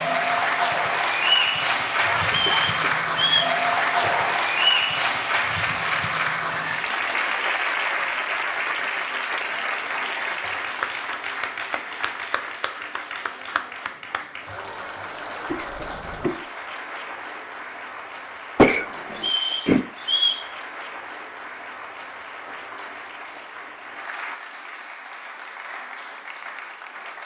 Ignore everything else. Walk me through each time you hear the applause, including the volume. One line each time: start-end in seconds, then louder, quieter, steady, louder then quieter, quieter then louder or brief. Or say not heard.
0.0-27.2 quieter.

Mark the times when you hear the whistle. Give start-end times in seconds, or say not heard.
2.2-3.5, 19.1-20.4.